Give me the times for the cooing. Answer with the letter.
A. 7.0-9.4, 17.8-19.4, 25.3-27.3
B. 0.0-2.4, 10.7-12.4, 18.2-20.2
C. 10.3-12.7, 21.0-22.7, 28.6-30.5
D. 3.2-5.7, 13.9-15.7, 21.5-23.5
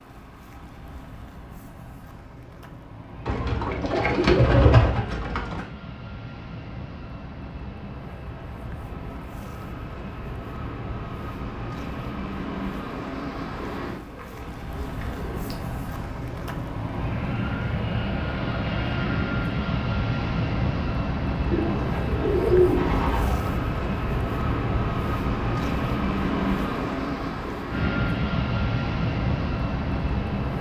D.